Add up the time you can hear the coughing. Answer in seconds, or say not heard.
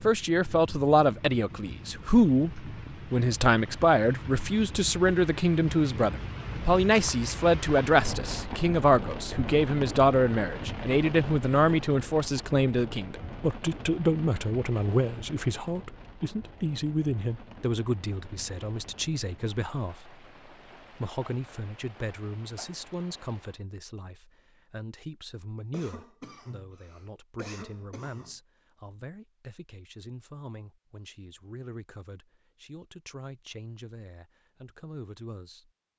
3 s.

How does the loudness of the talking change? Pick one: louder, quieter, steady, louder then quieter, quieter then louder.
quieter.